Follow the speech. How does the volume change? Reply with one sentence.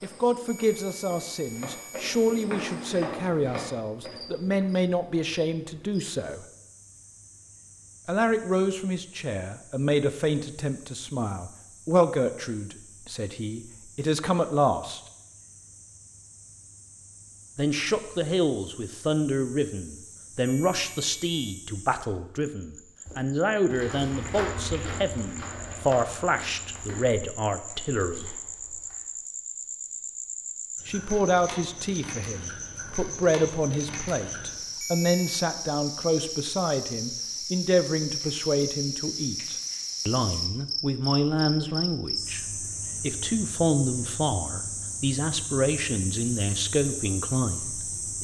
The volume of the speech stays about the same.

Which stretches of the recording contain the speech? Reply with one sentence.
You can hear the speech from 0.0 to 6.5 s, from 8.1 to 15.0 s, from 17.6 to 28.4 s and from 30.9 to 48.1 s.